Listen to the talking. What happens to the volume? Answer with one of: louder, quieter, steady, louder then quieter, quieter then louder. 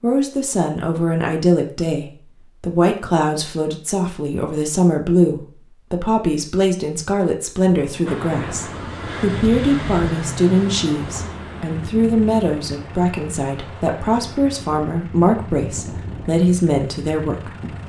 steady.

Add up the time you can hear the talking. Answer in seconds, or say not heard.
18 s.